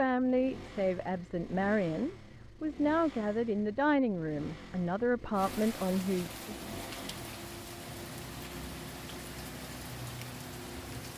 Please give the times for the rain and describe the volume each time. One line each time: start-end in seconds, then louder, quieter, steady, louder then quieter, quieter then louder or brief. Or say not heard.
5.3-11.1 steady.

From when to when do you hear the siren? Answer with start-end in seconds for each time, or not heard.
not heard.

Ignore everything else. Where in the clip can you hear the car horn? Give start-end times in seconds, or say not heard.
not heard.